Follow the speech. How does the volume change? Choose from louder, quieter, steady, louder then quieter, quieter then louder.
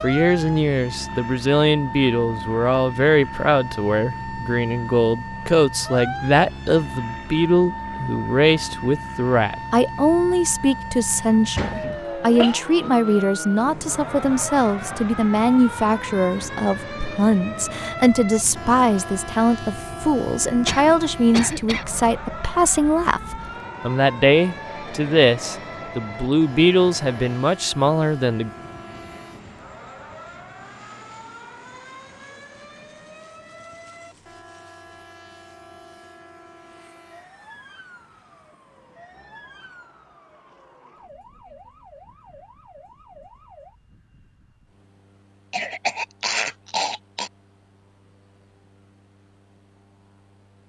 steady.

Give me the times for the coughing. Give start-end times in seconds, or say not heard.
11.6-12.6, 20.6-21.9, 45.5-47.3.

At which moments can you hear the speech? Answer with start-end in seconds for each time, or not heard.
0.0-28.5.